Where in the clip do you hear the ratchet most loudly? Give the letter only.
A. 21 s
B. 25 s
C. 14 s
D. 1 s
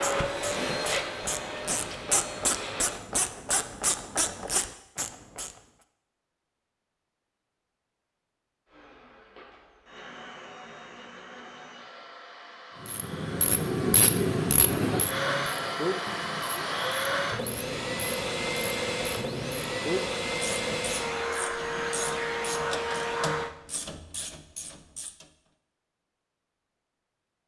C.